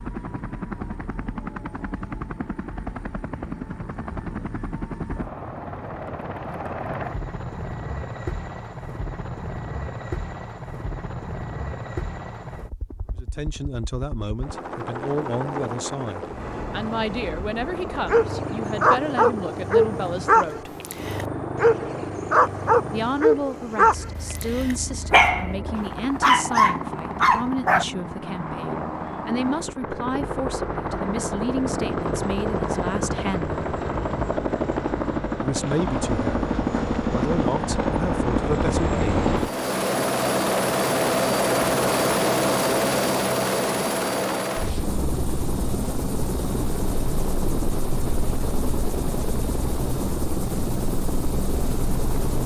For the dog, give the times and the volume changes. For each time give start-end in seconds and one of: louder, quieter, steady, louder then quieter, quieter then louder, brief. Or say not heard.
18.1-27.9 steady.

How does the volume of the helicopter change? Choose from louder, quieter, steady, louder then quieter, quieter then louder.
louder.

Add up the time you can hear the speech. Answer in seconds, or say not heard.
21 s.